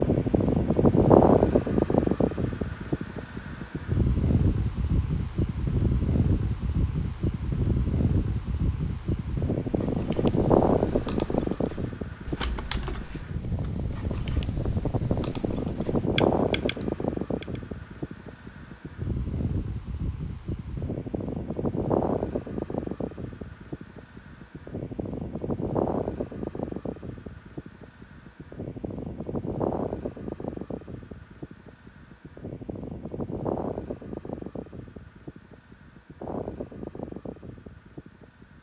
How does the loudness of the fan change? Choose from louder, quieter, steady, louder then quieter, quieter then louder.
quieter.